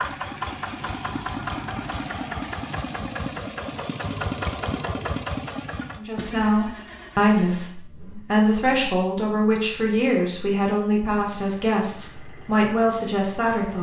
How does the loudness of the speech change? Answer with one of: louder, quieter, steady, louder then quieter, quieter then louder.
steady.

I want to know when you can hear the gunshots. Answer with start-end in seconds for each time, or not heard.
not heard.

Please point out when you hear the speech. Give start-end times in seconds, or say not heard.
6.0-13.7.